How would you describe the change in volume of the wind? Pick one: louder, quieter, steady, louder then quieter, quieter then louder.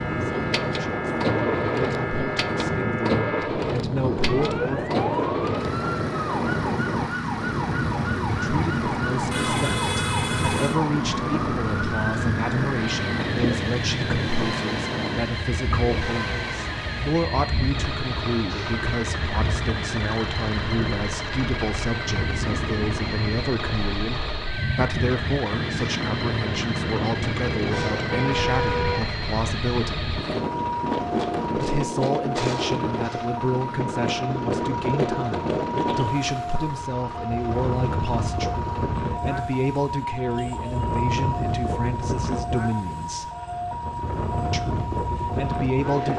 steady.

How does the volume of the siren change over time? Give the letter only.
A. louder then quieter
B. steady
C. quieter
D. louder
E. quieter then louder
B.